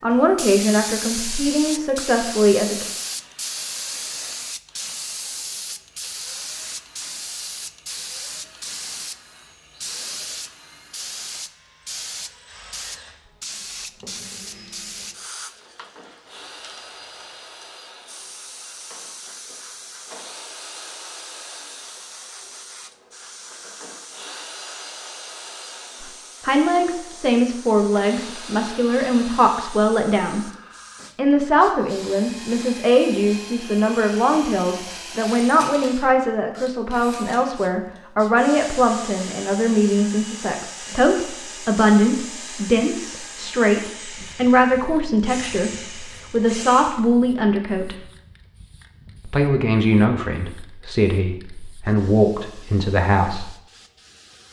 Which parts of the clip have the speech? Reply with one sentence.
You can hear the speech from 0.0 to 2.9 s, from 26.0 to 30.5 s, from 31.1 to 48.0 s and from 49.2 to 53.5 s.